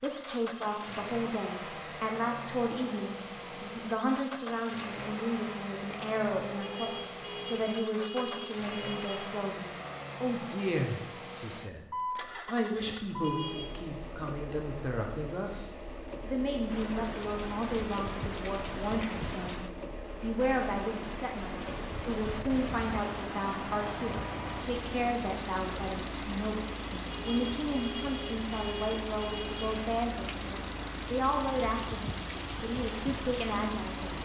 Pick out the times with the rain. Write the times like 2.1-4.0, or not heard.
16.6-34.1.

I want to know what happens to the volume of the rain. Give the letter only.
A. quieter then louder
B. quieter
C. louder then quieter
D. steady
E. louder
D.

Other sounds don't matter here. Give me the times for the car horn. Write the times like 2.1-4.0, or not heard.
6.5-9.3, 13.2-13.8, 27.1-29.8.